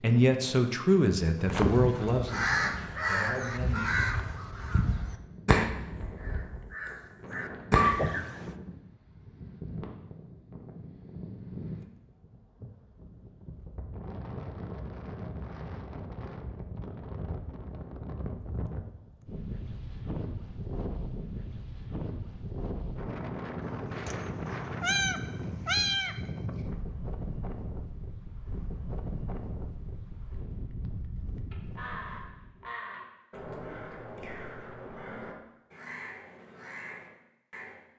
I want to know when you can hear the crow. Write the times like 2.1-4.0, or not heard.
1.4-8.1, 31.5-37.8.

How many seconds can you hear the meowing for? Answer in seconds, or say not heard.
3 s.